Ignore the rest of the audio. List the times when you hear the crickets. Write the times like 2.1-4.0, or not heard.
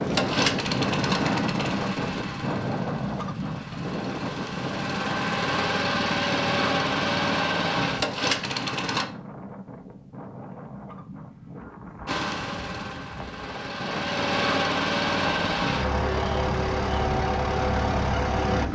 not heard.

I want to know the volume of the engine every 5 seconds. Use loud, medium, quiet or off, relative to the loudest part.
medium, loud, loud, loud.